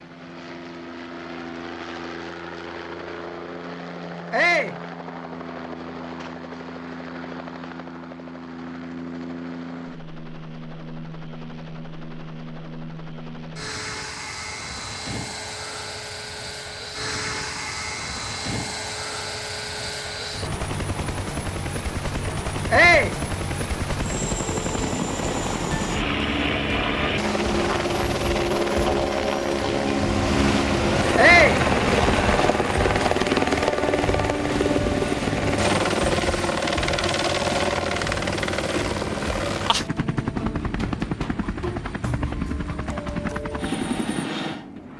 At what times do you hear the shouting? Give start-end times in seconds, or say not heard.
4.3-4.8, 22.7-23.1, 31.1-31.6.